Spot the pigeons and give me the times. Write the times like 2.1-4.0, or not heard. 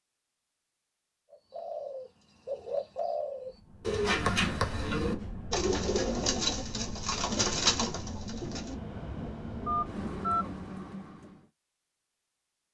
1.3-8.8.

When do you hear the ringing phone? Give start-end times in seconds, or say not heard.
9.7-10.4.